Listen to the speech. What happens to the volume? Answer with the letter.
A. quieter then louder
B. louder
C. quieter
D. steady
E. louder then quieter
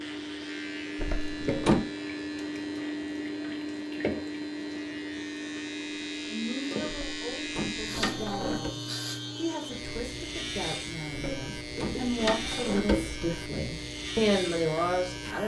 B.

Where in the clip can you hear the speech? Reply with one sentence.
You can hear the speech from 6.2 to 15.4 s.